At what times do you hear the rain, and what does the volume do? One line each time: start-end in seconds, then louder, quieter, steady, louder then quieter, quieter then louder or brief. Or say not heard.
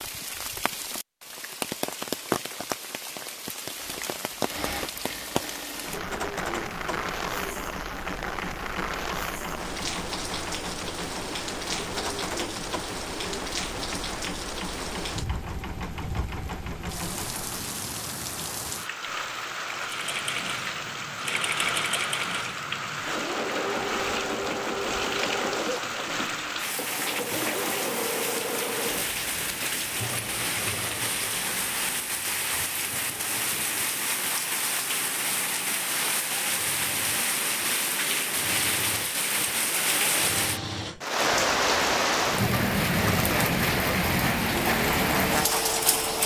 0.0-46.2 louder.